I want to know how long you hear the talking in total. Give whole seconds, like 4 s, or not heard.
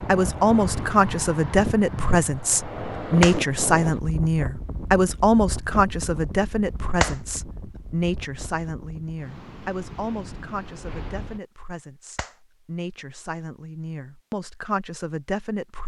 16 s.